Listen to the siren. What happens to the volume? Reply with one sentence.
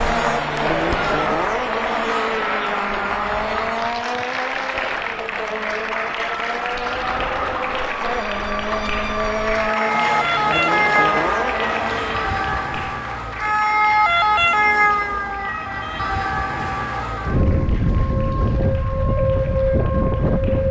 The loudness of the siren goes up.